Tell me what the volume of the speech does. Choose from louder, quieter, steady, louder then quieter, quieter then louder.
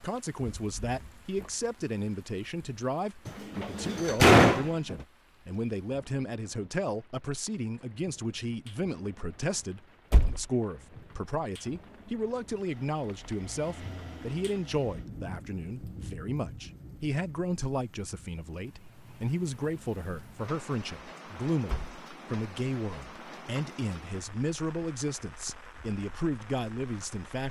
steady.